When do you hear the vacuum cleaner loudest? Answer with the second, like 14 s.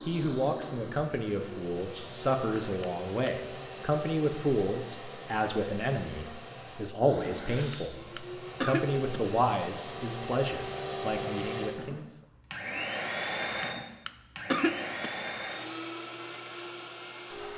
13 s.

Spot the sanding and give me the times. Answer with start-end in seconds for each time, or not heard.
not heard.